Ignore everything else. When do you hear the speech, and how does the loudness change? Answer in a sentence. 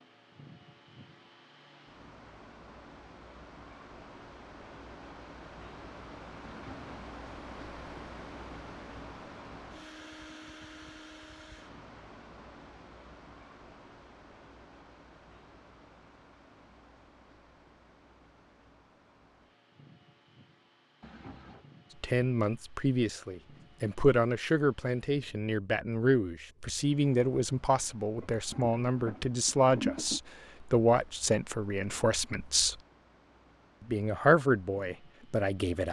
The speech can be heard from 22.0 to 32.8 s, at a steady volume; and briefly from 33.9 to 35.8 s.